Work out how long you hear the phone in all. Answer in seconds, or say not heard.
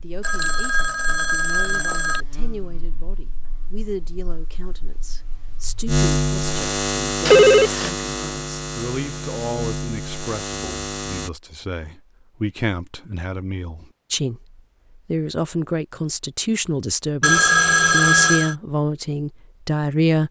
4 s.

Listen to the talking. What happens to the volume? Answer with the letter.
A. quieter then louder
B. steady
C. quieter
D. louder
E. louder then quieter
D.